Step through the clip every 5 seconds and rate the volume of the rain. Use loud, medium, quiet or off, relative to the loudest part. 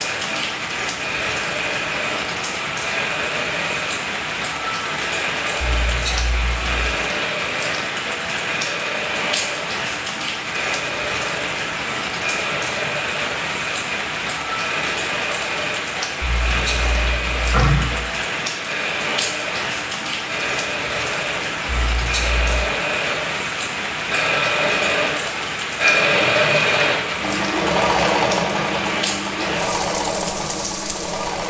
loud, loud, loud, loud, loud, loud, medium.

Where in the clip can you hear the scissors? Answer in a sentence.
You can hear the scissors from 5.6 to 6.7 s, from 16.2 to 18.1 s and from 21.6 to 22.7 s.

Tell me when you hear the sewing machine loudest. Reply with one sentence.
The volume of the sewing machine peaks at 26 seconds.